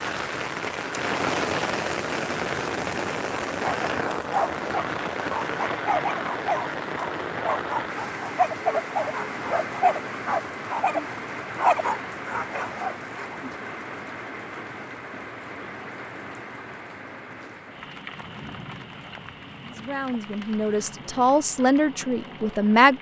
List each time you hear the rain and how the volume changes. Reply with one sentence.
The rain can be heard from 0.0 to 22.9 s, getting quieter.